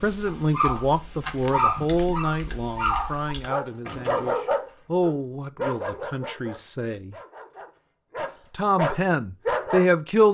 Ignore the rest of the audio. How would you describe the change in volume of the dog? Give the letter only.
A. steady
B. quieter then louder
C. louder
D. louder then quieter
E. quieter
B.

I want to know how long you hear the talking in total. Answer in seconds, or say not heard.
9 s.